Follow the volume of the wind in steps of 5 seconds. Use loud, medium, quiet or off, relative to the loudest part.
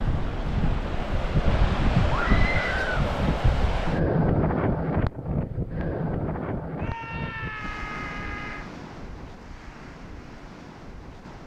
loud, medium, quiet.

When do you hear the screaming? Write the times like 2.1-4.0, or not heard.
2.1-3.0, 6.8-8.7.